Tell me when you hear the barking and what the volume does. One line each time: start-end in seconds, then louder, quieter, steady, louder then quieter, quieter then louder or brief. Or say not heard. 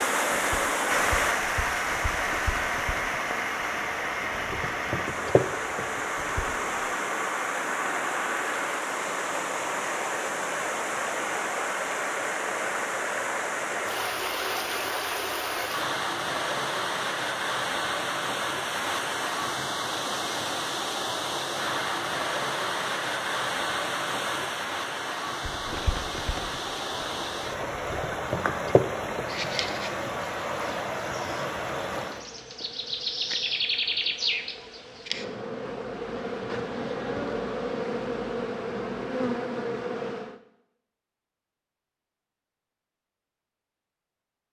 not heard.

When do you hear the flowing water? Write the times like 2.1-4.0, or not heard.
0.0-32.2.